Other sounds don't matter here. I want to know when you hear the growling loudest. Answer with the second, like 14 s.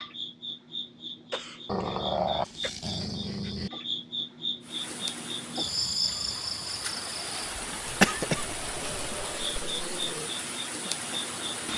2 s.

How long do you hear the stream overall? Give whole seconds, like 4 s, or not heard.
7 s.